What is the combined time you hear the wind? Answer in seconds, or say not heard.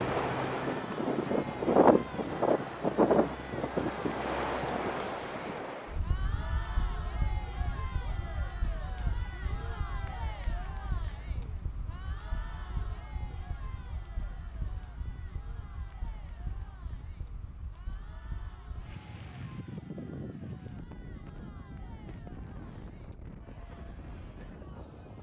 25 s.